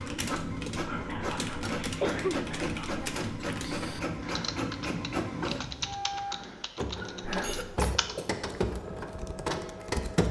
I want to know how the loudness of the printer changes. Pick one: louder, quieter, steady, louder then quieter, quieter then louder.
steady.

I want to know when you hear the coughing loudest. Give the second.
2 s.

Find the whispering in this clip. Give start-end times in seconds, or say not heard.
0.8-2.8, 7.2-7.7.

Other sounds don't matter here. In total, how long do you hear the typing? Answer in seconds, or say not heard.
10 s.